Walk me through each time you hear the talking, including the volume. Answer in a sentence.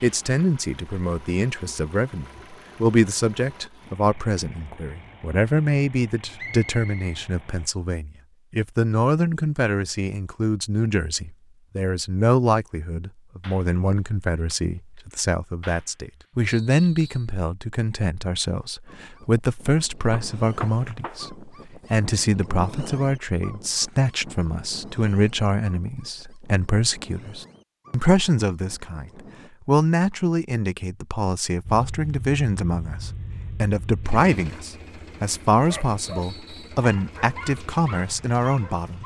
You can hear the talking from 0.0 to 39.0 s, at a steady volume.